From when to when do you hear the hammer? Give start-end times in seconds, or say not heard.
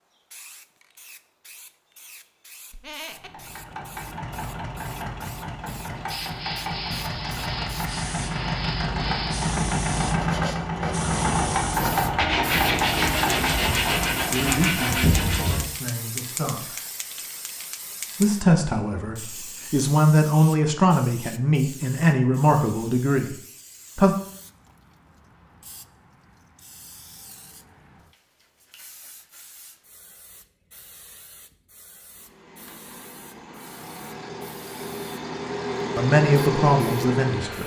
not heard.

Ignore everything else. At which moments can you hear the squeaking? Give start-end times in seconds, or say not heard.
2.7-3.5.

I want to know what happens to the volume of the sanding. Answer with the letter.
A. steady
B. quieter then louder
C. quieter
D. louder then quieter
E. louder
E.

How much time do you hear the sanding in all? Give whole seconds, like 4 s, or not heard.
10 s.